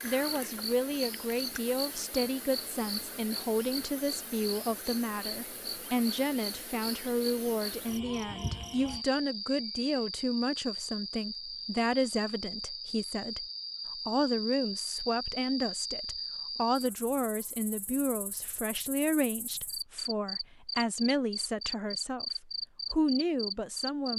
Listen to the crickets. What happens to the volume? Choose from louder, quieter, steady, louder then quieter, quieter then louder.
steady.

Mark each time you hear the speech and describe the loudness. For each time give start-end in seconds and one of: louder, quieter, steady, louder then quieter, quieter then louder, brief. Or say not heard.
0.0-24.1 steady.